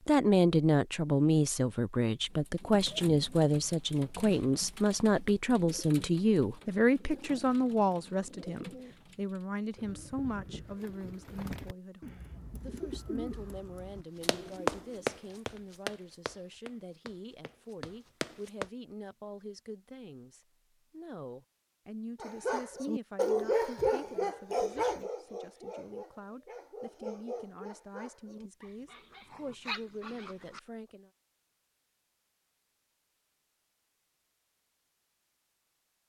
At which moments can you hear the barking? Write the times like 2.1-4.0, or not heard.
22.2-30.6.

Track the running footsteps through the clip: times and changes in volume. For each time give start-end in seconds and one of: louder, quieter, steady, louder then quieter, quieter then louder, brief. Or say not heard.
14.2-18.6 quieter then louder.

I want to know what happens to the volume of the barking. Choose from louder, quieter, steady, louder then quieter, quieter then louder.
quieter.